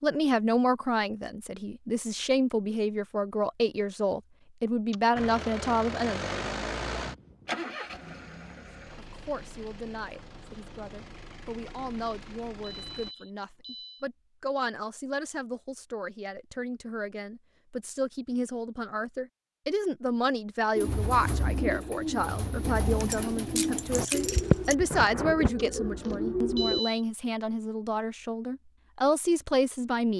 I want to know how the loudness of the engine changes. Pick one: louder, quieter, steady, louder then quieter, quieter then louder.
quieter.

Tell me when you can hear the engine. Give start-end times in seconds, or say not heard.
5.2-13.2.